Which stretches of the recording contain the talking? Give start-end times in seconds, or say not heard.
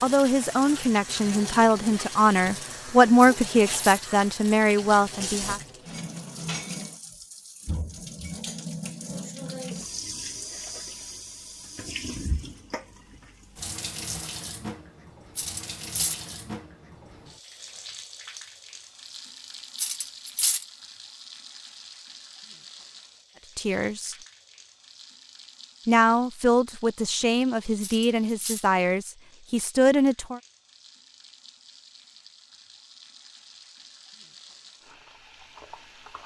0.0-5.6, 23.6-24.1, 25.9-30.4.